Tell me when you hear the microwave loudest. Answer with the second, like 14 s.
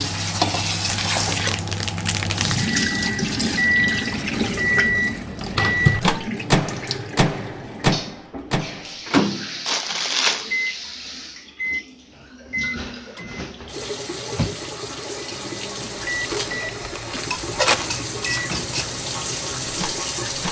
6 s.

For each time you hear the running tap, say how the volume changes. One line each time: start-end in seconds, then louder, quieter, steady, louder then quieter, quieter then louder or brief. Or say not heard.
0.0-20.4 quieter then louder.